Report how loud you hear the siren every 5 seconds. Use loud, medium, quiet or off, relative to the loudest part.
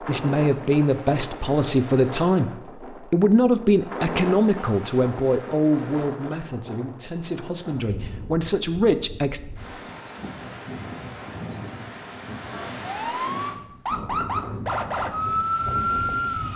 off, off, loud, loud.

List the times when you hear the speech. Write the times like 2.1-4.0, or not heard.
0.0-9.4.